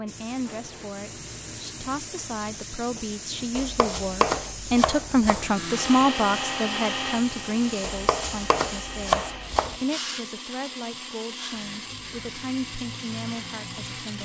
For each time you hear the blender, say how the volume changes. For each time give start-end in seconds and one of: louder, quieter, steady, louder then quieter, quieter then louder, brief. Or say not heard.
5.3-14.2 quieter.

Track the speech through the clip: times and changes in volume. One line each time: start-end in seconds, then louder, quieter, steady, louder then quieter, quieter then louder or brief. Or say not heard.
0.0-14.2 louder then quieter.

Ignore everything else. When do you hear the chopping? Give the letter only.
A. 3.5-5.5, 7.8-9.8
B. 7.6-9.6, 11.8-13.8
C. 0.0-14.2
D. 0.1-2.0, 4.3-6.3
A.